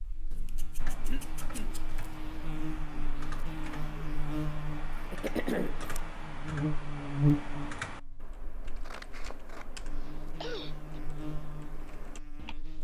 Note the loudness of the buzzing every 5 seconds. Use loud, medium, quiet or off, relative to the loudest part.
medium, loud, quiet.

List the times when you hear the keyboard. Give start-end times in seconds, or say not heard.
0.8-12.6.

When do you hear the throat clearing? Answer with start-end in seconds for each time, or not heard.
1.1-1.8, 5.1-5.8, 9.9-11.0.